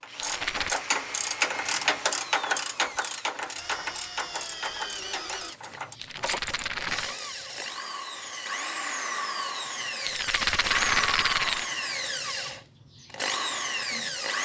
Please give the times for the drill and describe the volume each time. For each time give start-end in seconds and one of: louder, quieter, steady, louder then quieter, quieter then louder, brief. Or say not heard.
0.0-14.4 louder.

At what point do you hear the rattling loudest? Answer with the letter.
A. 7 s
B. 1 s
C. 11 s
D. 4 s
C.